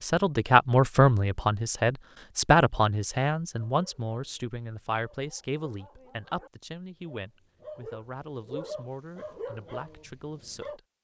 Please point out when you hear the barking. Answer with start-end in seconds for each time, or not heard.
3.6-10.8.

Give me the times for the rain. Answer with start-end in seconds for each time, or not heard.
not heard.